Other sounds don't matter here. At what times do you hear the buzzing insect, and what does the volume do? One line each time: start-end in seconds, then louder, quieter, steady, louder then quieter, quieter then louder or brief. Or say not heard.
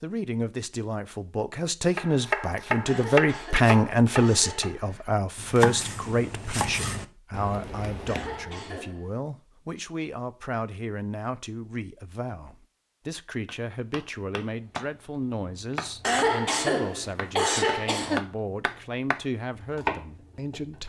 not heard.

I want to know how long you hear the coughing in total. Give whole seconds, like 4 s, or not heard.
5 s.